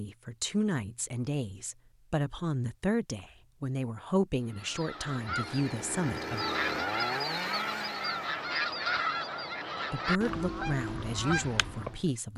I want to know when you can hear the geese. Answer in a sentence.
You can hear the geese from 4.5 to 12.1 s.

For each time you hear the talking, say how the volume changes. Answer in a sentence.
You can hear the talking from 0.0 to 6.5 s, at a steady volume; and briefly from 9.9 to 12.3 s.